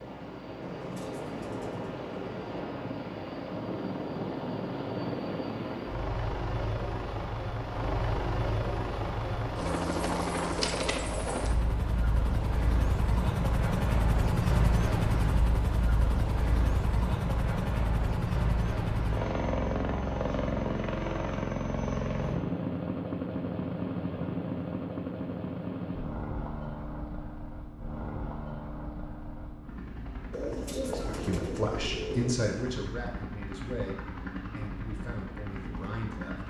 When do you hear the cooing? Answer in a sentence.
The cooing can be heard from 0.6 to 2.6 s and from 30.3 to 32.4 s.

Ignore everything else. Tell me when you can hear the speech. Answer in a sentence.
The speech can be heard from 30.9 to 36.4 s.